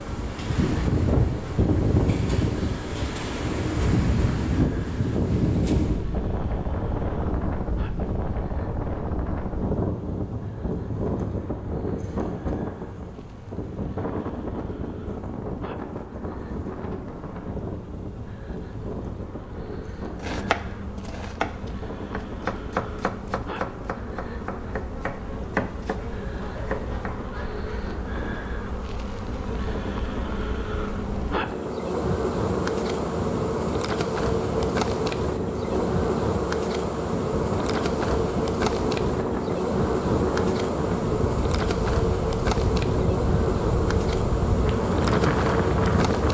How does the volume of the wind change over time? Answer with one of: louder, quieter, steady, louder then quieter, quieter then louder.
quieter then louder.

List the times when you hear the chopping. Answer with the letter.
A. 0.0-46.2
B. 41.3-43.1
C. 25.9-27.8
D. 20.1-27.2
D.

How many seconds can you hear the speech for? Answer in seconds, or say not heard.
not heard.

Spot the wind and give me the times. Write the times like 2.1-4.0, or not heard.
0.0-46.2.